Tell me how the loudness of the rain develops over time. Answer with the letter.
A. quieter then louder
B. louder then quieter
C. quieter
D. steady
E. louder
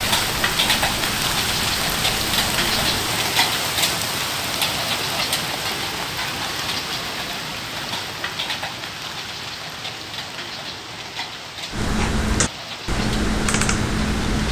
C.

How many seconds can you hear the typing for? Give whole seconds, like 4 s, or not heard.
6 s.